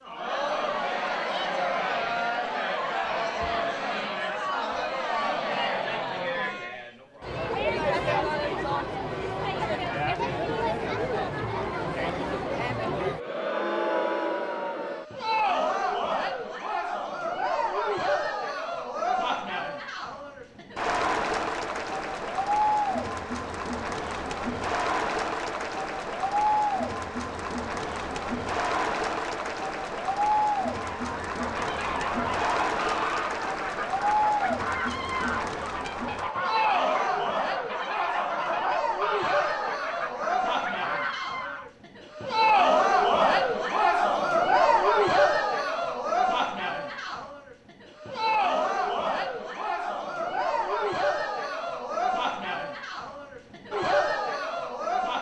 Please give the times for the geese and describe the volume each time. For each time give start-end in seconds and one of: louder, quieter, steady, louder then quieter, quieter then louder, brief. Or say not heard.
30.8-41.7 steady.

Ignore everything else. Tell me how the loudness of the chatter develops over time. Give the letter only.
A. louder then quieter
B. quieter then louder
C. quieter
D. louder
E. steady
E.